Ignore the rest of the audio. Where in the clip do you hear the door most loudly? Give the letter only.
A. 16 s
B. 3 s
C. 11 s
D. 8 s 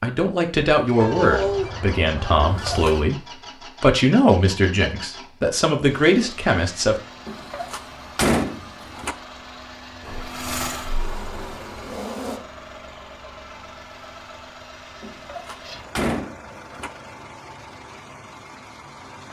D.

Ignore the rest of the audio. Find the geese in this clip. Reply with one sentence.
You can hear the geese from 1.0 to 3.0 s.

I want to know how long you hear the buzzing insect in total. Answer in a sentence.
You can hear the buzzing insect for 2 seconds altogether.